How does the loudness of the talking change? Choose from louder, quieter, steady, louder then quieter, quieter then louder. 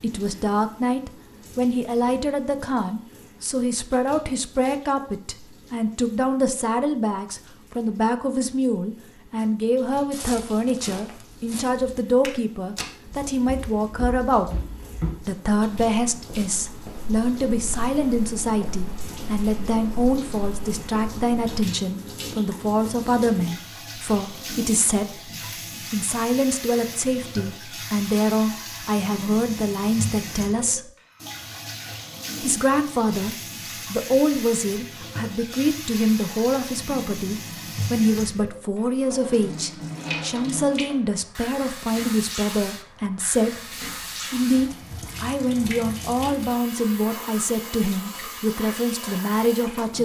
steady.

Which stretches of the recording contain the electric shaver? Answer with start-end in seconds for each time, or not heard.
not heard.